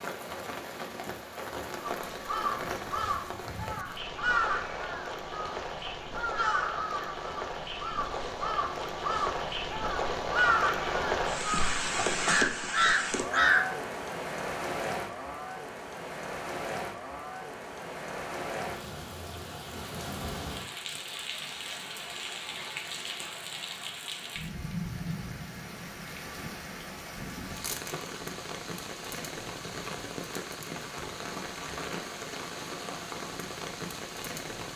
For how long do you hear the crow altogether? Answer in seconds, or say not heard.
12 s.